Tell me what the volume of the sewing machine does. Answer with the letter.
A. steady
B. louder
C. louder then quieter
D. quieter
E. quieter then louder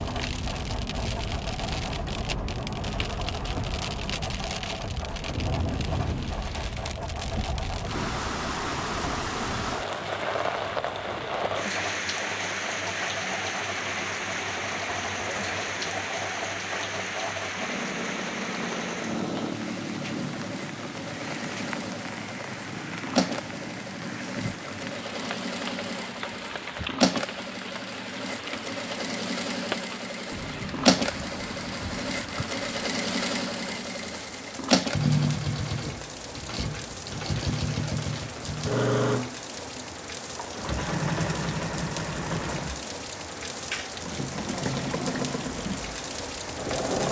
B.